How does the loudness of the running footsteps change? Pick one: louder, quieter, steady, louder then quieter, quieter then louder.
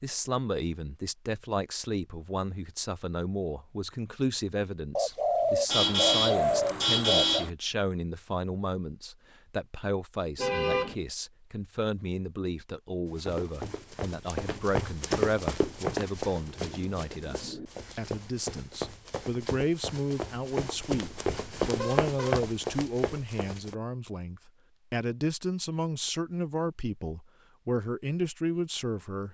quieter then louder.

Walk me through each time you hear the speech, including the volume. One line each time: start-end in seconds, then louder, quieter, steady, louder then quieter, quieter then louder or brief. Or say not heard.
0.0-29.2 steady.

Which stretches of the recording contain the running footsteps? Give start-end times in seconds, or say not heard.
13.1-23.8.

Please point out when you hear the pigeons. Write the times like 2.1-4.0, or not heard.
5.0-7.5, 16.4-17.7.